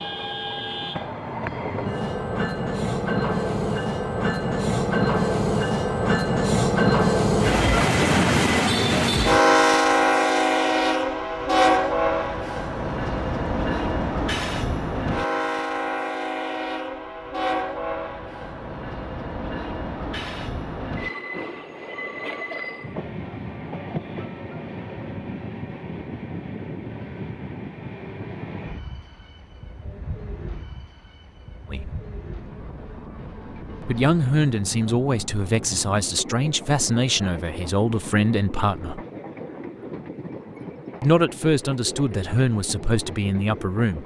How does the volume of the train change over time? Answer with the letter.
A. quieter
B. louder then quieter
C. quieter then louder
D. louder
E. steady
A.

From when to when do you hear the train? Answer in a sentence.
The train can be heard from 0.0 to 44.0 s.